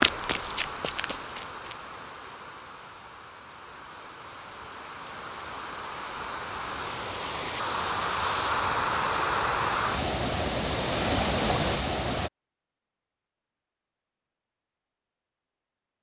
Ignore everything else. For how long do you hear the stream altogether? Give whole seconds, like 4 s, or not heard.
12 s.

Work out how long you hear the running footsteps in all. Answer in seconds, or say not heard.
2 s.